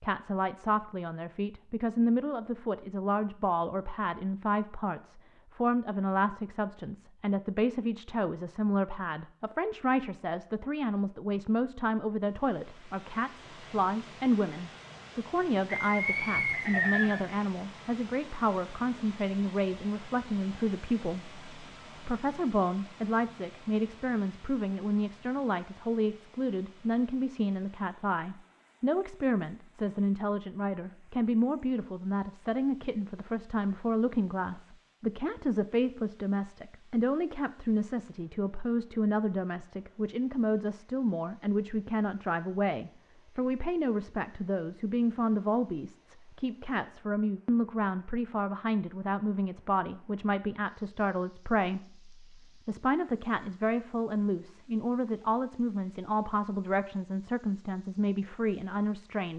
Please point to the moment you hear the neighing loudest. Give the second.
17 s.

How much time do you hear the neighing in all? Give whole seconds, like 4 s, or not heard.
2 s.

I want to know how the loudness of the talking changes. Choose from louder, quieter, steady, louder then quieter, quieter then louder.
steady.